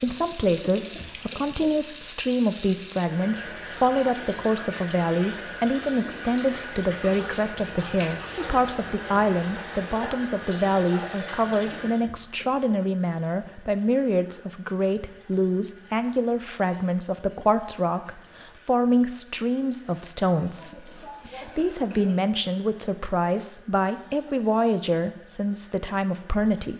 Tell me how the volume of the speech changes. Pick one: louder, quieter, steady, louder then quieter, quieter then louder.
steady.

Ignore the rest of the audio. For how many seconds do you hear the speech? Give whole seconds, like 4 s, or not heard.
27 s.